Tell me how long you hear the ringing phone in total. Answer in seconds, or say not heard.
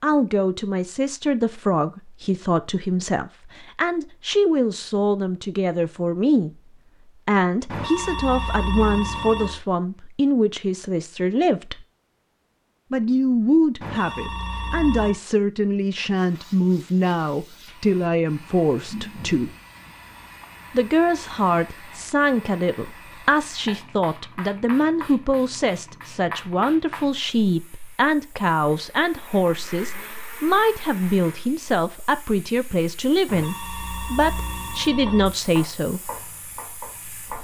5 s.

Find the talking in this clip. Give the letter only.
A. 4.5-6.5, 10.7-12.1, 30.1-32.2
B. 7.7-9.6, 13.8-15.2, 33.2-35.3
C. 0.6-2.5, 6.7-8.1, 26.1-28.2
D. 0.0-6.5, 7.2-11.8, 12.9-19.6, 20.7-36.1
D.